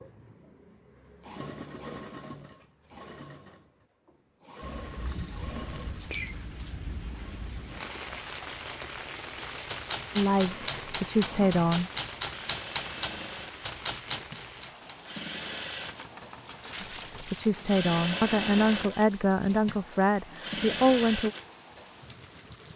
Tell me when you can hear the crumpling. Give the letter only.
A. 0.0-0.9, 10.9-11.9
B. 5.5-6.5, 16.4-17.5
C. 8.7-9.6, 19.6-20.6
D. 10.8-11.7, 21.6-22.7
B.